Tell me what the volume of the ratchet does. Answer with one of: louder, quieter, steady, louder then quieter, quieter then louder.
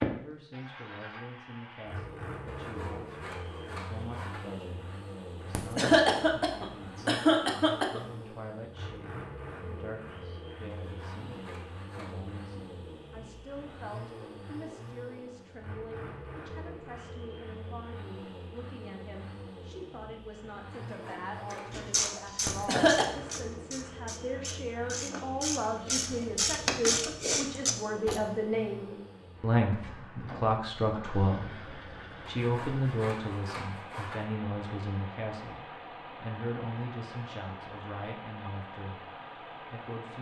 quieter then louder.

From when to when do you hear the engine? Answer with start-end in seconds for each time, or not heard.
0.0-40.1.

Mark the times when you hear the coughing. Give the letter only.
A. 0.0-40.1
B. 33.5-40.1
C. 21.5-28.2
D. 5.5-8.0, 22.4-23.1
D.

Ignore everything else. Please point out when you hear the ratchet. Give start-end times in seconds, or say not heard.
21.5-28.2.